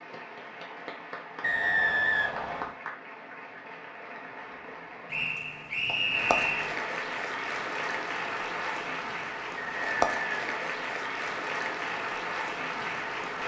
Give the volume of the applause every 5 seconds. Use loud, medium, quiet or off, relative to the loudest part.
medium, loud, loud.